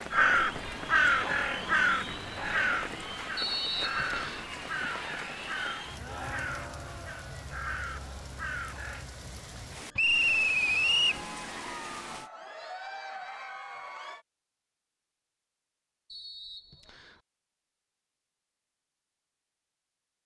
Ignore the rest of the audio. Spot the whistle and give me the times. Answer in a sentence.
The whistle can be heard from 3.4 to 4.5 s, from 9.9 to 11.2 s and from 16.1 to 17.2 s.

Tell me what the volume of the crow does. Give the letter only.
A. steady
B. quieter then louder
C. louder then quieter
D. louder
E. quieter
E.